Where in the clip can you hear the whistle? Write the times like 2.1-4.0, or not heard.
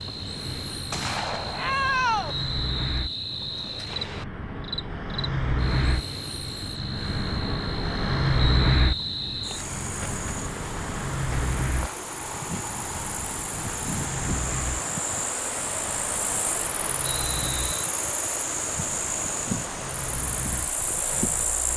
2.2-4.2, 8.3-9.7, 17.0-17.9.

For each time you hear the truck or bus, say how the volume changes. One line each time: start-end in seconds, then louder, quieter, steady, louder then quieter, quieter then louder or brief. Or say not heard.
0.0-21.7 louder then quieter.